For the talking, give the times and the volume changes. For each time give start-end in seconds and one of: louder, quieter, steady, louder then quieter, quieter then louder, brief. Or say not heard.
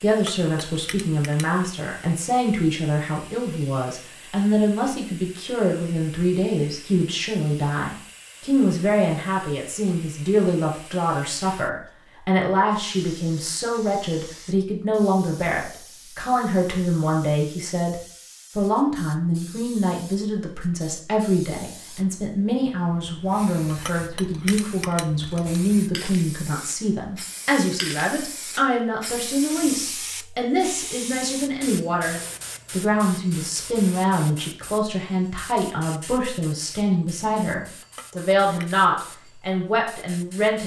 0.0-40.6 steady.